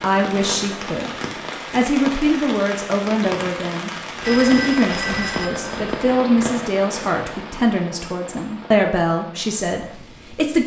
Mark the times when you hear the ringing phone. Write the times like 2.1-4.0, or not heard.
4.2-6.5.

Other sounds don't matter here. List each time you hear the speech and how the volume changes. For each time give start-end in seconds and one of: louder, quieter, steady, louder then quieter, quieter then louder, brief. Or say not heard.
0.0-10.6 steady.